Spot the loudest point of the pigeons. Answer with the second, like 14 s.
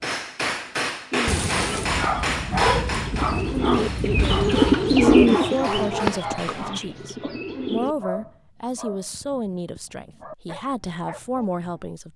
5 s.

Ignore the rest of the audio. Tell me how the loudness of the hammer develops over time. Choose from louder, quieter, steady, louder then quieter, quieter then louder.
quieter.